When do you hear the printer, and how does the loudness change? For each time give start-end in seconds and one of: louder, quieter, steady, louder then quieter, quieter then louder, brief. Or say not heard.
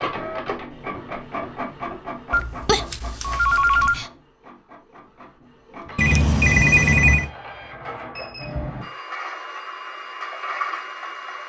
0.0-11.4 quieter then louder.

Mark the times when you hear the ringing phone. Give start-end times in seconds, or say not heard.
2.3-4.0, 6.0-7.3.